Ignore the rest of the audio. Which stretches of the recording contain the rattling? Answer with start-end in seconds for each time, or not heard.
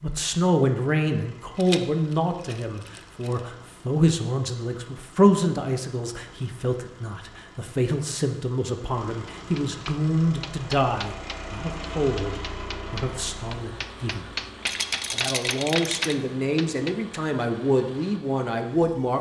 1.6-3.4, 14.6-16.1.